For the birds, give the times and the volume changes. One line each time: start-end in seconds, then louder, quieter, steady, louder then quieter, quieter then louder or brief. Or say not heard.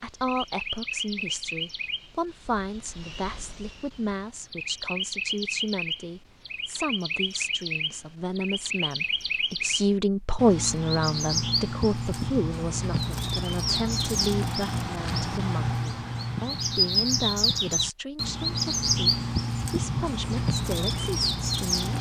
0.0-21.9 louder.